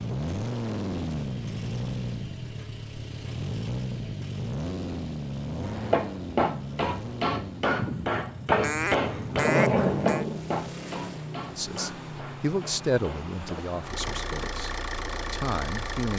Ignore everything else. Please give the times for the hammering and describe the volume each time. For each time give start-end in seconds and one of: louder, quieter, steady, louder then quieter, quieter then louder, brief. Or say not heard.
5.5-14.3 quieter.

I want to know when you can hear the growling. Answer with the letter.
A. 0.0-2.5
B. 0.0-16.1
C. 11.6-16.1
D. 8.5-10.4
D.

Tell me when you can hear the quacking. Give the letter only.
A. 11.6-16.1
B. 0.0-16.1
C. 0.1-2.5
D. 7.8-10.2
D.